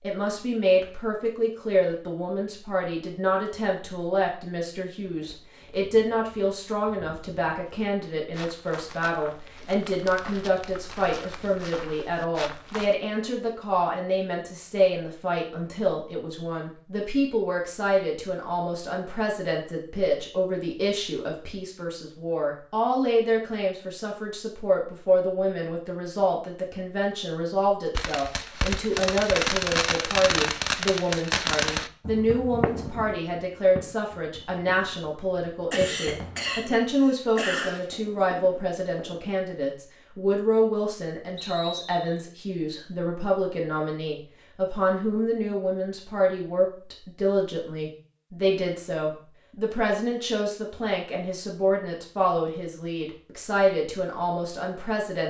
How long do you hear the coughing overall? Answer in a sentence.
The coughing can be heard for 2 seconds in total.